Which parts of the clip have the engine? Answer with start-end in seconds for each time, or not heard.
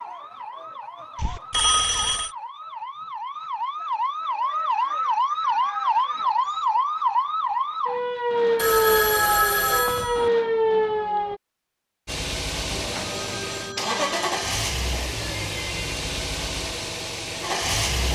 12.1-18.0.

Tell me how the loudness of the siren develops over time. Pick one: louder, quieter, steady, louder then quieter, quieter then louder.
louder.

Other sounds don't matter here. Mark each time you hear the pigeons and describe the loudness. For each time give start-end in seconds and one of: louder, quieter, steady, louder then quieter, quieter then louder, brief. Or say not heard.
not heard.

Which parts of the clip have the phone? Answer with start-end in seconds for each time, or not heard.
1.1-2.3, 8.6-10.3, 12.7-14.7.